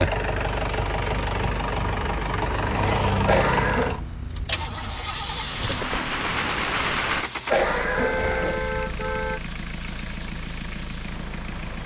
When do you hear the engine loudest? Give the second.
3 s.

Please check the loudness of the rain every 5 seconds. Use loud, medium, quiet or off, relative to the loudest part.
off, loud, medium.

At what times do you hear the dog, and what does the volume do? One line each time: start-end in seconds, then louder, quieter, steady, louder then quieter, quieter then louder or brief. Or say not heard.
not heard.